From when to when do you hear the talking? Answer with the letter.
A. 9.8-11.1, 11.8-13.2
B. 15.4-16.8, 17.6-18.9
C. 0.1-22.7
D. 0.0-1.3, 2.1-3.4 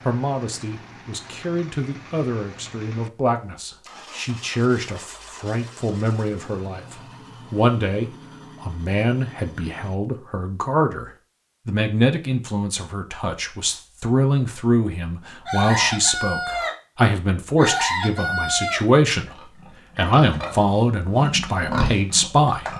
C.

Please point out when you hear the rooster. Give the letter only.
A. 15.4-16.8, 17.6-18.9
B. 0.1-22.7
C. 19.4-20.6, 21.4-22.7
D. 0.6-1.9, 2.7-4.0
A.